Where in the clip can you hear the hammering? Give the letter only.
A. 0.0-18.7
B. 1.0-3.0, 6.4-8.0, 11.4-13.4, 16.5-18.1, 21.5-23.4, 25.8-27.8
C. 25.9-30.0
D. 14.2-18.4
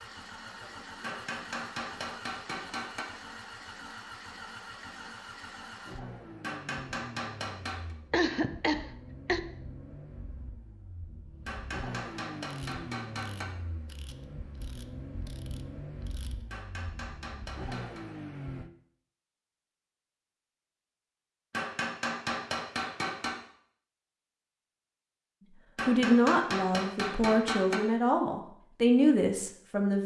B.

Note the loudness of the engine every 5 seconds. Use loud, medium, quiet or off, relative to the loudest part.
loud, loud, loud, loud, off, off.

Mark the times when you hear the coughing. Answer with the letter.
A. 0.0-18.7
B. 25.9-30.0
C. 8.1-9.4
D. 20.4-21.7
C.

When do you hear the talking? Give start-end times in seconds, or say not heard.
25.9-30.0.